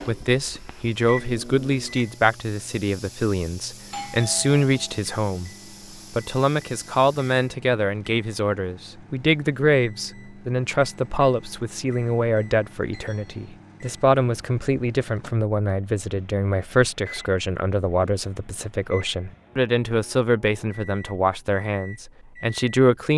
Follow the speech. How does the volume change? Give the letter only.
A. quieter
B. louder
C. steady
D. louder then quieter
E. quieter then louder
C.